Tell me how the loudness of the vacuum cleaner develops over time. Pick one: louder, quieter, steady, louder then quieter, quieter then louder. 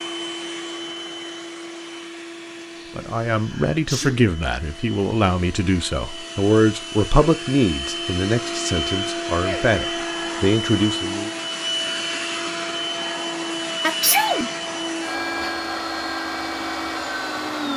louder.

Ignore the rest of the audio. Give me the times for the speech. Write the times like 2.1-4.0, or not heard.
3.0-11.3.